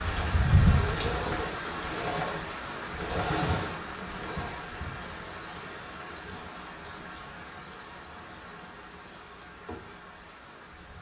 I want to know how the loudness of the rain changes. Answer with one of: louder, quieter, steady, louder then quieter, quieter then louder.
quieter.